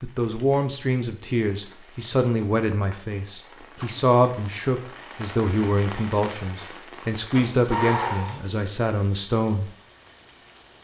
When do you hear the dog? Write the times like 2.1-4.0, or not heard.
7.3-8.4.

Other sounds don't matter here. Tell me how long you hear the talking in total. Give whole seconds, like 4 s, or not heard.
10 s.